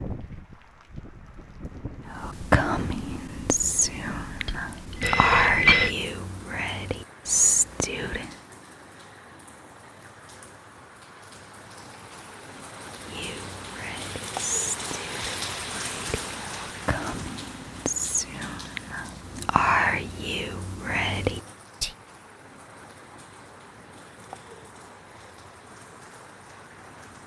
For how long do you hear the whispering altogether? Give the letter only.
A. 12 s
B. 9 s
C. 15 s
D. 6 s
C.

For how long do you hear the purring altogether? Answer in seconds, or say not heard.
not heard.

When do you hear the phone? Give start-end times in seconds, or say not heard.
4.5-6.0.